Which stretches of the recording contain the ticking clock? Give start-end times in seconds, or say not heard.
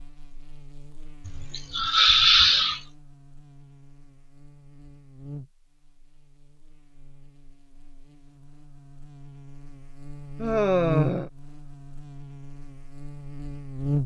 not heard.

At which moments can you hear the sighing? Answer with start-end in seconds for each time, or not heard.
1.2-2.8, 10.3-11.3.